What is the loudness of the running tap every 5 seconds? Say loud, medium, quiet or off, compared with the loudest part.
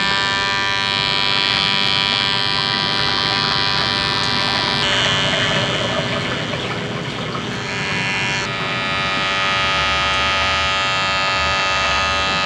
loud, loud, medium.